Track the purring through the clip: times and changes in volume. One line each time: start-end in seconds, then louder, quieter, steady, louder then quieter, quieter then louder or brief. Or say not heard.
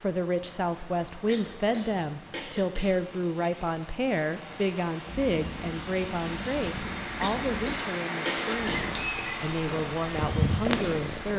5.0-11.3 louder.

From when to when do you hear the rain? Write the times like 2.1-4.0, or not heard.
0.0-11.3.